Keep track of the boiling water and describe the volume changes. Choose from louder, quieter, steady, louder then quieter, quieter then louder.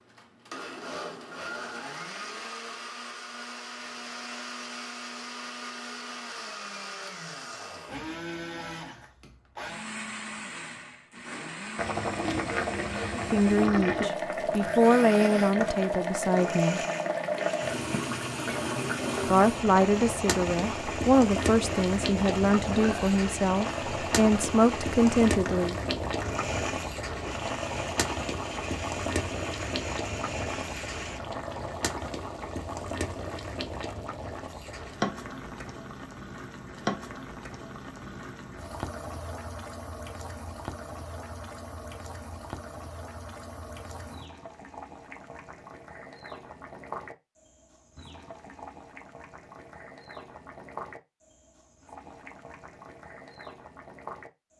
quieter.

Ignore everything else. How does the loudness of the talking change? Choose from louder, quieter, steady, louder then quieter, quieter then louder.
steady.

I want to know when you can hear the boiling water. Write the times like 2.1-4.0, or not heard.
11.8-54.5.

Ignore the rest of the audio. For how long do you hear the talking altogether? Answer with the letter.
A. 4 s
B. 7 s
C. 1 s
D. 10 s
D.